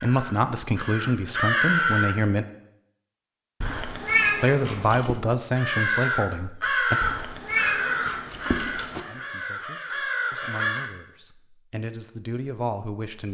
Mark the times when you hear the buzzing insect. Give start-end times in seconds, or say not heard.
not heard.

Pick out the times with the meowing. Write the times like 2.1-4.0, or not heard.
3.6-5.2, 7.0-9.0.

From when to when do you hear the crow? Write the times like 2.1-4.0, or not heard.
0.0-2.1, 5.5-10.9.